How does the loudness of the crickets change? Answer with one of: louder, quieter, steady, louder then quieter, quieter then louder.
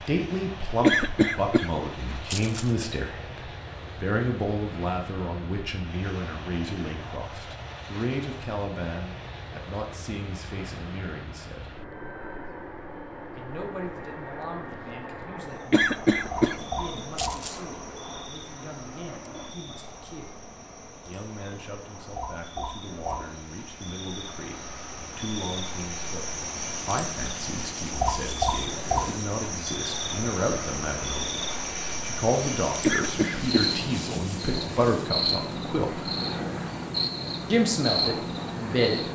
louder.